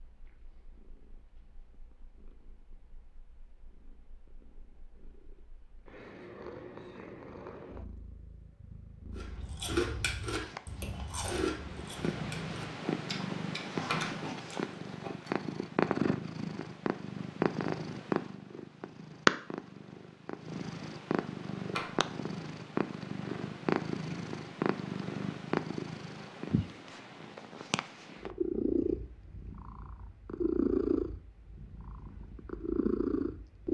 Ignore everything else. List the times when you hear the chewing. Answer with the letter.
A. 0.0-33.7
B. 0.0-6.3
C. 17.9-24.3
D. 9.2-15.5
D.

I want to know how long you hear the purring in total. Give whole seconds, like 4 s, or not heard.
34 s.